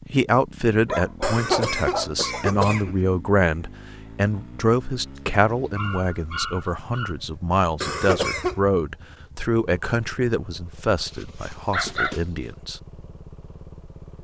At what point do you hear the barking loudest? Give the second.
12 s.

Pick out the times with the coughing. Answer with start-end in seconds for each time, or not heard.
1.2-3.0, 7.8-8.6.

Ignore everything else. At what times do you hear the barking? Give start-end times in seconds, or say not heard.
0.8-2.5, 5.2-7.2, 11.1-12.2.